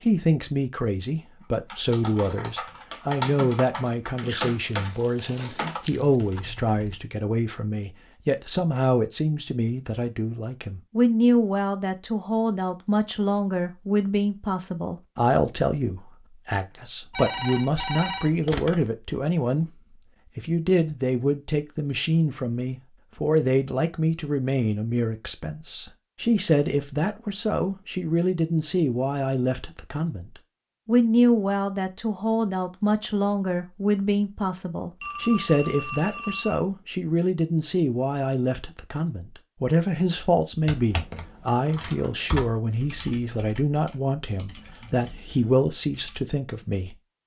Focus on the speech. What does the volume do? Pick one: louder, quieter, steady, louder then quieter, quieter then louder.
steady.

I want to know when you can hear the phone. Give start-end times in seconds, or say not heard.
17.1-18.9, 35.0-36.5.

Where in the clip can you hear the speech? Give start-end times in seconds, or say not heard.
0.0-19.7, 20.4-47.0.